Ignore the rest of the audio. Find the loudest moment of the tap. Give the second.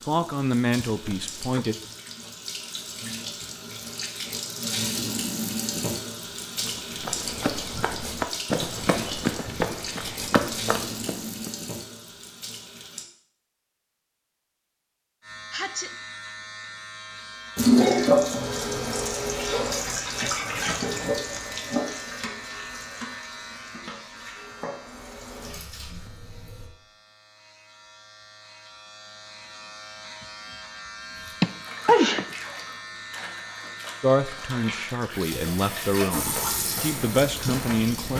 18 s.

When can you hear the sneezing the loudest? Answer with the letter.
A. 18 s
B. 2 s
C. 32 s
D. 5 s
C.